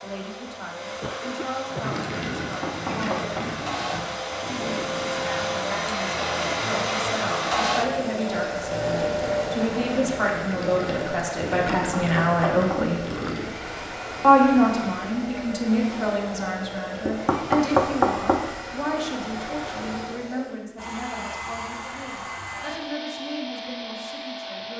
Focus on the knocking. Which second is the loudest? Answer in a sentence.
The volume of the knocking peaks at 18 seconds.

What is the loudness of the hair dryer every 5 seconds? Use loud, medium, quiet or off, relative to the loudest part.
medium, loud, medium, medium, medium.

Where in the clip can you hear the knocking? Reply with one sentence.
The knocking can be heard from 2.4 to 3.5 s, from 11.5 to 12.8 s and from 17.1 to 18.4 s.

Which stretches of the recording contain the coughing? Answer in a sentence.
The coughing can be heard from 1.0 to 2.1 s and from 13.1 to 13.5 s.